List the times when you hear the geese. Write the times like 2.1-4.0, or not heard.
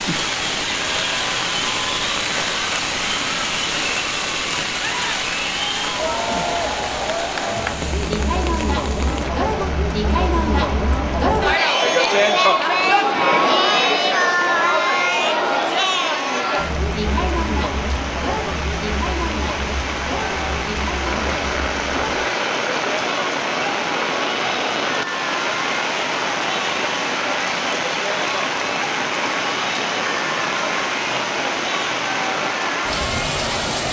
not heard.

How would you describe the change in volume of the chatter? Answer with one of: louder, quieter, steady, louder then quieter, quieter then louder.
louder then quieter.